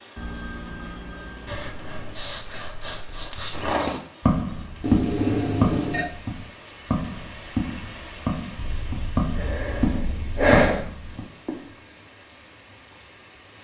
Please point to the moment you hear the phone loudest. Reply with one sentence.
The loudest moment of the phone is at 5 seconds.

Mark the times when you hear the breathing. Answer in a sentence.
The breathing can be heard from 1.4 to 3.6 s and from 8.6 to 10.8 s.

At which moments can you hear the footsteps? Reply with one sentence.
The footsteps can be heard from 3.5 to 11.2 s.